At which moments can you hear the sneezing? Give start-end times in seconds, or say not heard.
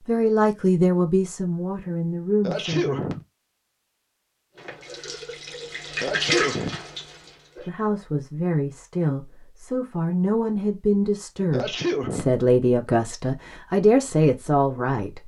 2.4-3.2, 6.0-6.8, 11.5-12.3.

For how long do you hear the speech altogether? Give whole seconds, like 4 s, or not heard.
11 s.